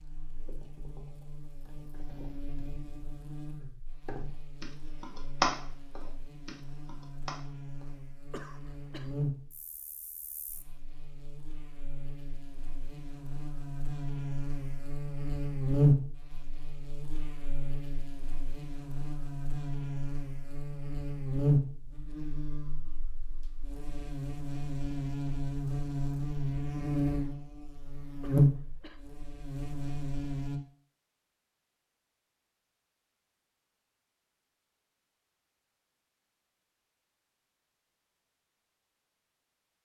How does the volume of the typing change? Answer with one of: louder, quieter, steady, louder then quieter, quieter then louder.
louder then quieter.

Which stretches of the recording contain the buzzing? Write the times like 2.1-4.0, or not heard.
0.0-30.6.